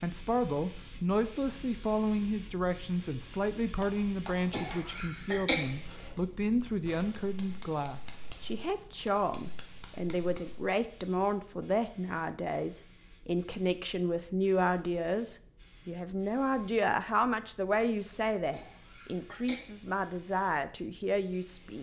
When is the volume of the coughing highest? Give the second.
5 s.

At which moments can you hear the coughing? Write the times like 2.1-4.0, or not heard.
4.5-5.8, 18.5-19.8.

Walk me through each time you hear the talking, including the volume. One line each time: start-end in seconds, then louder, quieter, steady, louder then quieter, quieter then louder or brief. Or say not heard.
0.0-21.7 steady.